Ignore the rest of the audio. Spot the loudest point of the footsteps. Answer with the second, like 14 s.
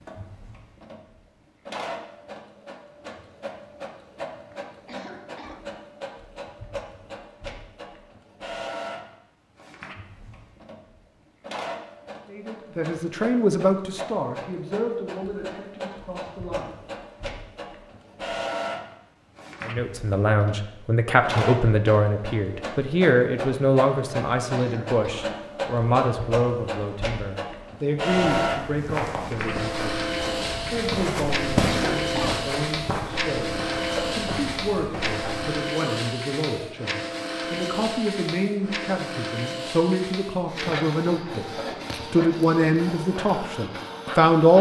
32 s.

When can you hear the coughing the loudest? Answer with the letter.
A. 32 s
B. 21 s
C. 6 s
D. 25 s
A.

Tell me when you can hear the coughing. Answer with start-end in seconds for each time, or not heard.
4.8-5.7, 24.5-25.4, 31.6-32.5.